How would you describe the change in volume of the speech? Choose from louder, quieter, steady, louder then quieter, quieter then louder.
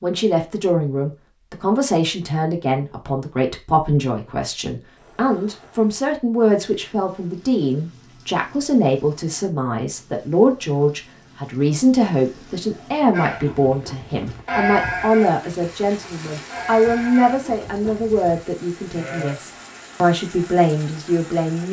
steady.